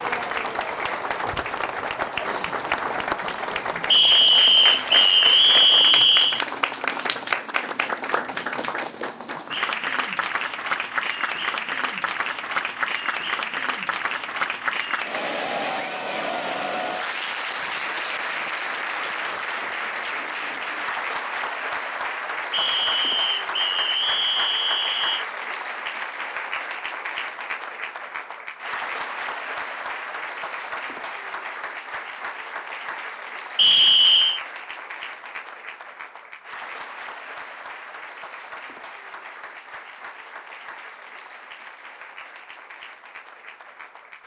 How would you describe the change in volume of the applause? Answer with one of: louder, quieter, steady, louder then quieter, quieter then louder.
quieter.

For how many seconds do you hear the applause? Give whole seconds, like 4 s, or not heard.
44 s.